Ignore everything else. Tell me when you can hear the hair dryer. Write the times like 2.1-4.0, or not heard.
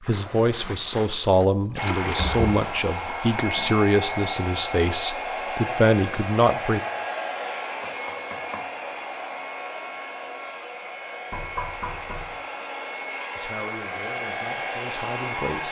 1.8-15.6.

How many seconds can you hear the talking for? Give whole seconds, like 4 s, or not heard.
9 s.